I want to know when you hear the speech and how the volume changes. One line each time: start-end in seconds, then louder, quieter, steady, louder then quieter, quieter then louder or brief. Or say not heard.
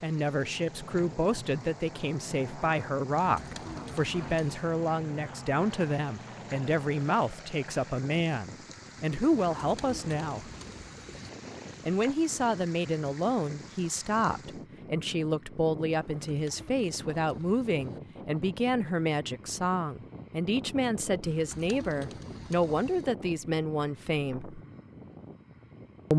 0.0-10.5 steady
11.8-24.6 steady.